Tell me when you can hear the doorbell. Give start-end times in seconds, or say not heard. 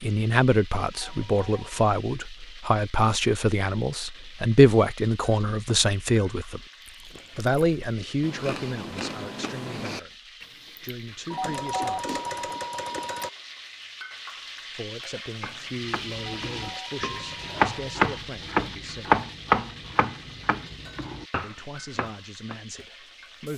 0.9-1.8, 11.3-13.3, 16.1-18.1.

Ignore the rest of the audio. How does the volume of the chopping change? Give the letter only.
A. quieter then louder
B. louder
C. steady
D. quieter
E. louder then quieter
E.